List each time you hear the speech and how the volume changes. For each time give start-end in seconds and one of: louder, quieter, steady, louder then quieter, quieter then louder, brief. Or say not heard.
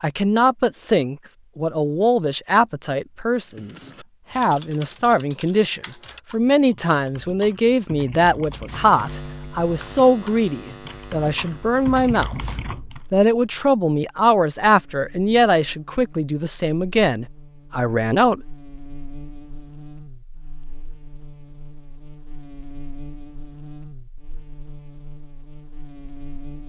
0.0-18.6 steady.